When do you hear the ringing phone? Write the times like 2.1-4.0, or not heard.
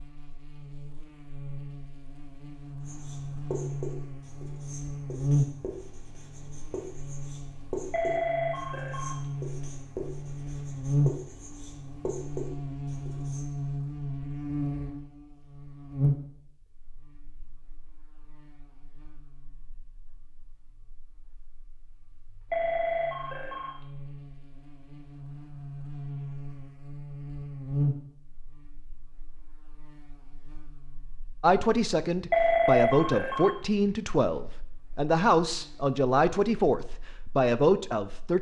7.9-9.2, 22.5-23.8, 32.3-33.9.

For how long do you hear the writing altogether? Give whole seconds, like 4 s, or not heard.
11 s.